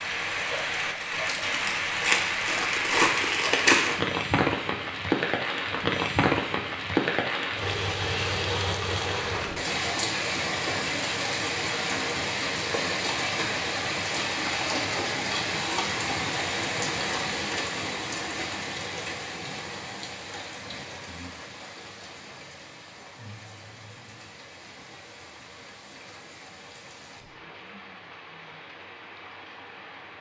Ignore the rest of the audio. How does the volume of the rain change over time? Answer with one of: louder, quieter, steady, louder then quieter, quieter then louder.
quieter.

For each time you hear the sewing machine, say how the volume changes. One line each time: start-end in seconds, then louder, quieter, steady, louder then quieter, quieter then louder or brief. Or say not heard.
not heard.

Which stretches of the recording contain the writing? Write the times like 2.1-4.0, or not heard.
not heard.